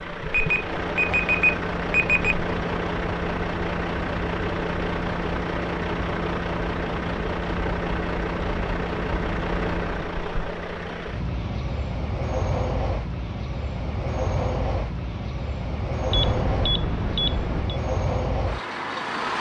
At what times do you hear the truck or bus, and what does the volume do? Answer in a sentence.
The truck or bus can be heard from 0.0 to 19.3 s, at a steady volume.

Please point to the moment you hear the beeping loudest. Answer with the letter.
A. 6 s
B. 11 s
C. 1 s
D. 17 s
C.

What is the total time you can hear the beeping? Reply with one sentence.
The beeping can be heard for 4 seconds in total.